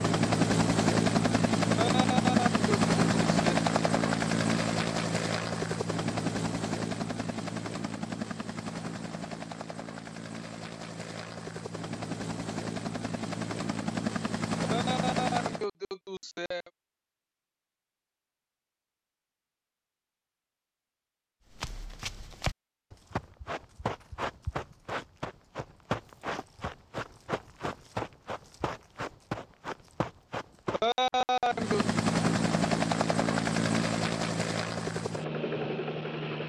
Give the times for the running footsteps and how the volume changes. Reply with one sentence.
The running footsteps can be heard from 21.5 to 31.2 s, at a steady volume.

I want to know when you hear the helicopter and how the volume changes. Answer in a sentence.
You can hear the helicopter from 0.0 to 15.7 s, getting quieter then louder; and from 31.5 to 36.4 s, getting quieter.